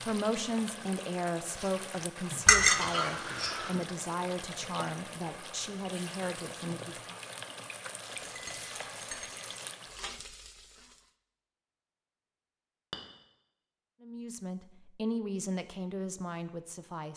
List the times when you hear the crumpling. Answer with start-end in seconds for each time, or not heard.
8.0-9.8.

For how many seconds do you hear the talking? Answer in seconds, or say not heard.
10 s.